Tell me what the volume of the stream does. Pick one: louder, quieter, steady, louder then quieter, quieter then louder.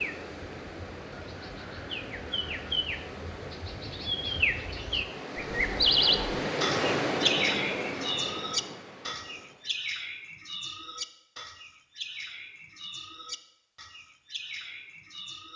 louder then quieter.